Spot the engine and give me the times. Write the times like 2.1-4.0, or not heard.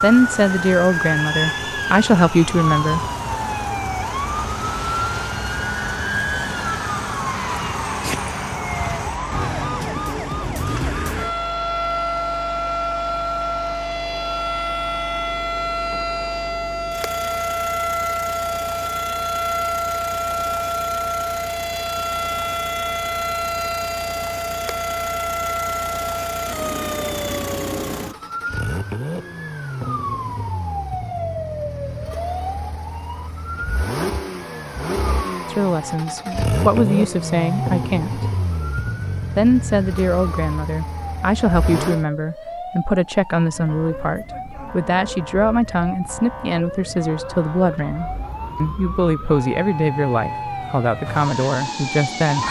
0.0-42.0.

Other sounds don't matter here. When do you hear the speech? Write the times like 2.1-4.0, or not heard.
0.0-3.0, 35.5-38.3, 39.4-52.4.